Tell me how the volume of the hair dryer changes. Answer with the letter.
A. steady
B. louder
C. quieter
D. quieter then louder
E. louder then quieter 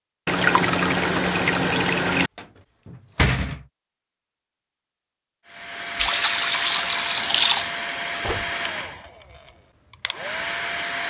D.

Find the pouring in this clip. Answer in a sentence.
The pouring can be heard from 0.2 to 2.3 s and from 6.0 to 7.7 s.